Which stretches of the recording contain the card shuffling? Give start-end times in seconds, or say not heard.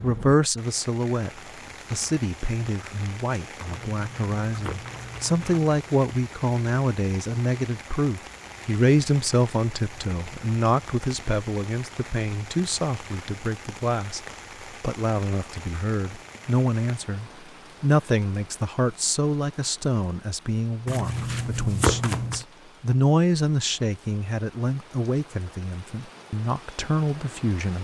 3.6-5.7, 20.9-22.4.